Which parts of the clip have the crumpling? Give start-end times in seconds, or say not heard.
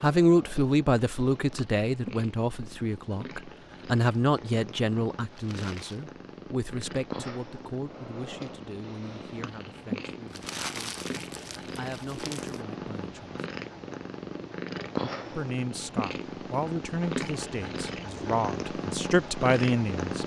5.3-6.0, 10.3-12.6.